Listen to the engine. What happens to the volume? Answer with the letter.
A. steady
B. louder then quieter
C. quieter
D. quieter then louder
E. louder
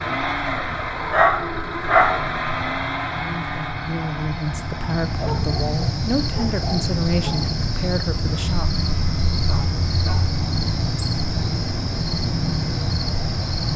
C.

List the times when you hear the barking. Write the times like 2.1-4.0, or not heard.
0.5-2.2, 5.0-7.5, 9.4-10.2.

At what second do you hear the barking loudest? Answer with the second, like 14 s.
2 s.